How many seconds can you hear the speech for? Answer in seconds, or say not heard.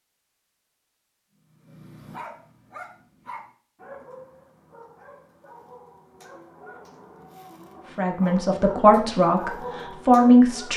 3 s.